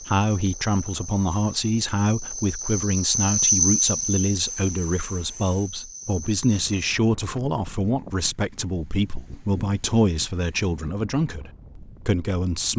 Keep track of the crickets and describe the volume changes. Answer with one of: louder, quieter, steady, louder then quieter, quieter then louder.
louder then quieter.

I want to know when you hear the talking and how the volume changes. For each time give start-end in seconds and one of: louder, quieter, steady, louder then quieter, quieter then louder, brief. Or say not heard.
0.0-12.7 steady.